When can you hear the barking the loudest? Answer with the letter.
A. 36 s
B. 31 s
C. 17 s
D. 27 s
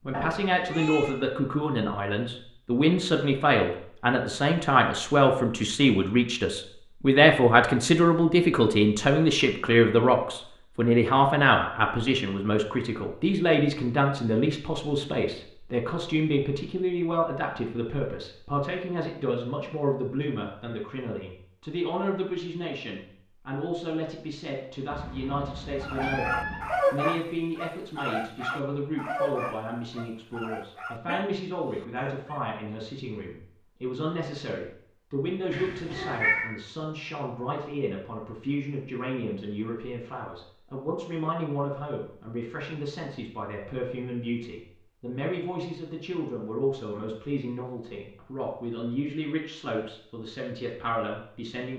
D.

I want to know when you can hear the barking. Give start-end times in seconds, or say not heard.
25.8-32.5.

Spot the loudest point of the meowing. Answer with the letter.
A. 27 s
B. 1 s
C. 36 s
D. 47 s
C.